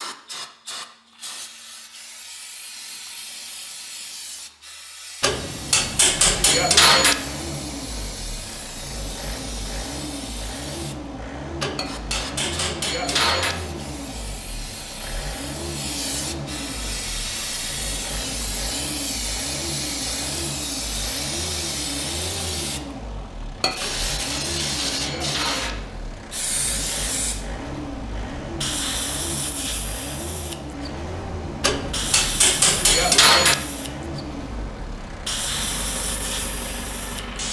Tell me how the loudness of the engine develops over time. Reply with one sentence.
The volume of the engine stays about the same.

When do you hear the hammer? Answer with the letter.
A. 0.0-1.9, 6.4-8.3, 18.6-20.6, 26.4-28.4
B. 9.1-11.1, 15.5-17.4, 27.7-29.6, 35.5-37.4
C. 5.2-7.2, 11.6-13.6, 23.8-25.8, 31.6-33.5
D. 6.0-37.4
C.